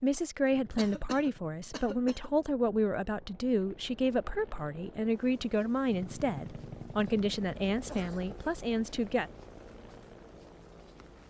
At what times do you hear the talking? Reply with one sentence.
You can hear the talking from 0.0 to 9.3 s.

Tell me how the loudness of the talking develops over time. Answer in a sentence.
The loudness of the talking stays about the same.